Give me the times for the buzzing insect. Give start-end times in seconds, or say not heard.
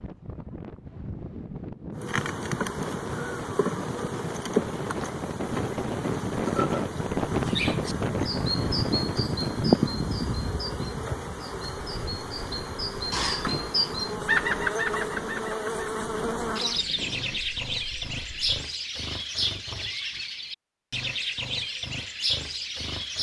1.9-16.9.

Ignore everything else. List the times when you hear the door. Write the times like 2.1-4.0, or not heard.
13.1-13.8.